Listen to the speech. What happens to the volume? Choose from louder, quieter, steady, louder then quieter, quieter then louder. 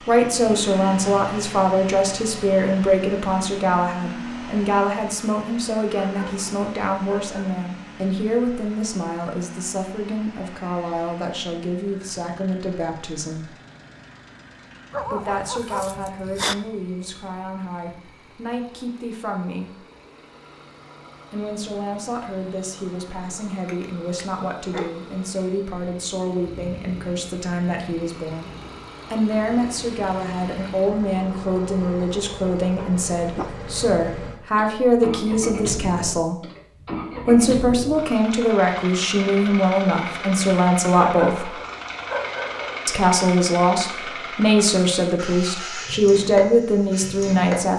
quieter then louder.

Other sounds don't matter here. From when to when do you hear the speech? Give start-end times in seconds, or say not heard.
0.1-13.5, 15.1-19.8, 21.3-28.5, 29.1-36.4, 37.2-41.5, 42.9-47.7.